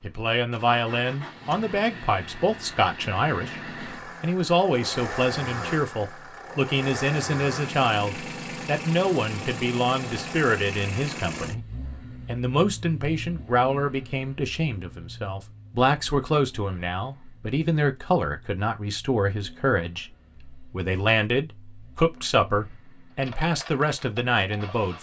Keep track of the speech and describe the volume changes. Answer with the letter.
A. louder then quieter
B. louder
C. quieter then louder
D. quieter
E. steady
E.